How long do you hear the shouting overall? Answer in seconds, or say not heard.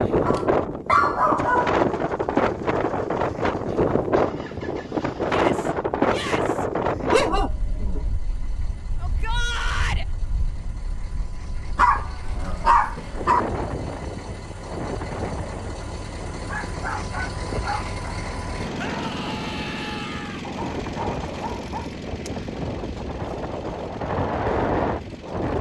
4 s.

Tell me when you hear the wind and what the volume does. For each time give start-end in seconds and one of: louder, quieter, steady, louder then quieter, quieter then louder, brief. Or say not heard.
0.0-25.5 quieter then louder.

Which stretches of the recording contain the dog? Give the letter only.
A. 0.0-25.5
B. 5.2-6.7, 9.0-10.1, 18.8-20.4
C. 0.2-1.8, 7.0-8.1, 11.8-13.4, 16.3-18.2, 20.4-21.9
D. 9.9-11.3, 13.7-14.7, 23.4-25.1
C.